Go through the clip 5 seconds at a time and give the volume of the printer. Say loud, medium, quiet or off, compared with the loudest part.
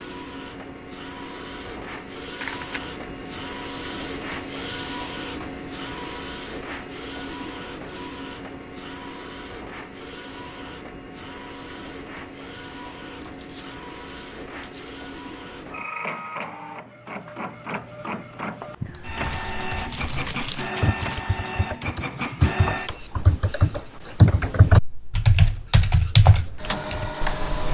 loud, loud, medium, loud, loud, loud.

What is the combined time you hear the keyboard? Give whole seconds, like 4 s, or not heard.
9 s.